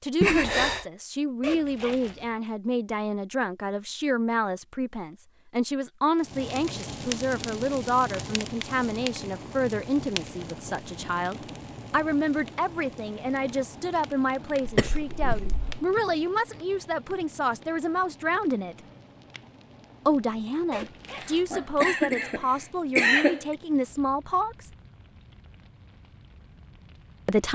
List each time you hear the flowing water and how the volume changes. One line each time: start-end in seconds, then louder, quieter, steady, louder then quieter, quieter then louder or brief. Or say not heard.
not heard.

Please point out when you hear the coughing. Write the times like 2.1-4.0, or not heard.
0.2-0.8, 14.7-15.8, 21.1-23.6.